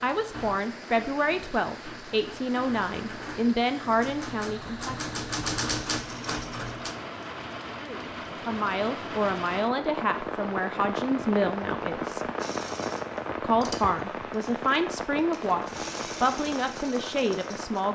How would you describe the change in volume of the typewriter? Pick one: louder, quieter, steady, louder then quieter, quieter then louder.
louder.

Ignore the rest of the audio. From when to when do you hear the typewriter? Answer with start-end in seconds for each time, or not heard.
0.0-7.0.